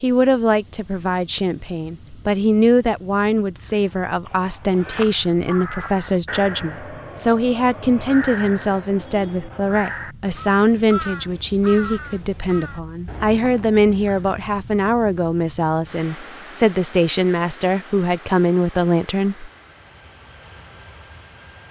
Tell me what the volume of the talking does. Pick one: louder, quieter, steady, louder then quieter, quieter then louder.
steady.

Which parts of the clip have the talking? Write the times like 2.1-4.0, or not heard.
0.0-19.5.